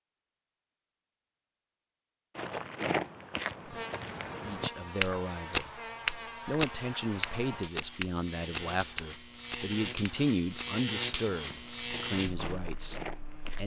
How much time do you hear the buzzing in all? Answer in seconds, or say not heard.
10 s.